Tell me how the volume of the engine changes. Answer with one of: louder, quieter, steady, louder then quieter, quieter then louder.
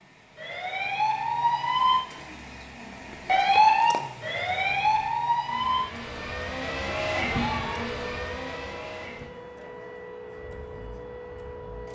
louder then quieter.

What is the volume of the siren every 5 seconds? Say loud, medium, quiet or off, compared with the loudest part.
loud, medium, quiet.